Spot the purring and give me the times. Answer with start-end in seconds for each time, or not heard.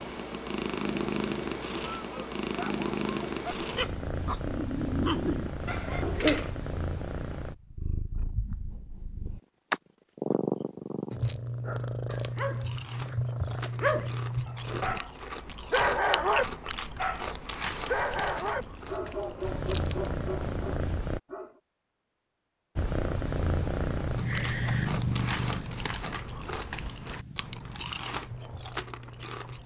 0.0-15.0, 17.8-21.2, 22.8-29.6.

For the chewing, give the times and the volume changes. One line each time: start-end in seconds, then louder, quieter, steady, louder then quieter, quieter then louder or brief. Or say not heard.
12.1-20.1 louder then quieter
24.1-29.6 steady.